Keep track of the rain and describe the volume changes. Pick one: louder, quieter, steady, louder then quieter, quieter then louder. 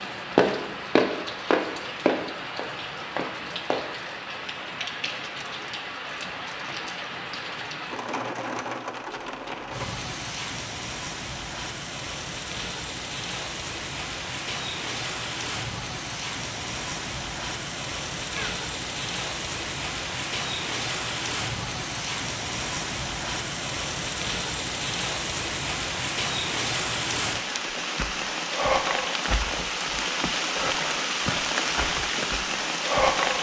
louder.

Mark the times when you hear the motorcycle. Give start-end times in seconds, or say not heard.
not heard.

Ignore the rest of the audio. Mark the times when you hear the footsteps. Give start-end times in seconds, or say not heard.
0.0-4.0.